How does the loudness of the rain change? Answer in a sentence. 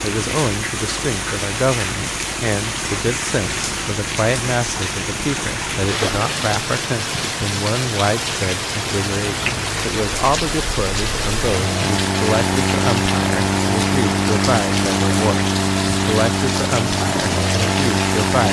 The volume of the rain stays about the same.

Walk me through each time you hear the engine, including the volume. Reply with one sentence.
The engine can be heard from 0.0 to 18.4 s, getting louder.